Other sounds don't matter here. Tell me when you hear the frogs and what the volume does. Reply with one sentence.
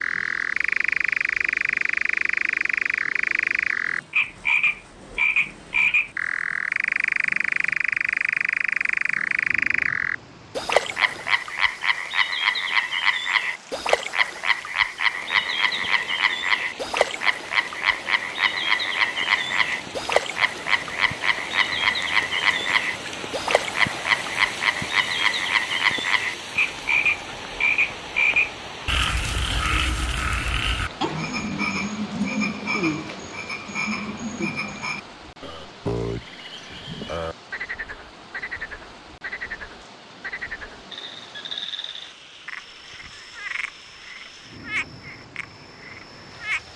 You can hear the frogs from 0.0 to 46.7 s, getting quieter.